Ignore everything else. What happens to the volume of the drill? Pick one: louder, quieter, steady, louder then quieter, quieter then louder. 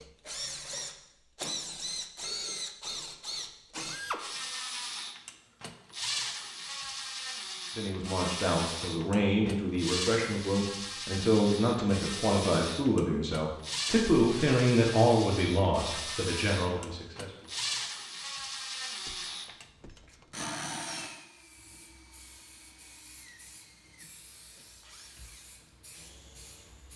quieter.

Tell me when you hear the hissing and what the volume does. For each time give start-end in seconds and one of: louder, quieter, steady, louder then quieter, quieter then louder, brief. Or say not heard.
21.4-26.9 steady.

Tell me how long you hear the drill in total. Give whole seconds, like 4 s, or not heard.
27 s.